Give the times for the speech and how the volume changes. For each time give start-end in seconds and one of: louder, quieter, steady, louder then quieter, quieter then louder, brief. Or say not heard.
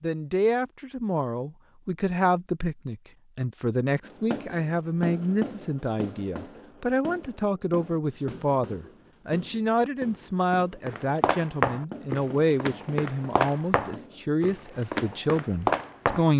0.0-16.3 steady.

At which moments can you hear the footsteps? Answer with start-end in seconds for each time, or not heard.
10.8-16.2.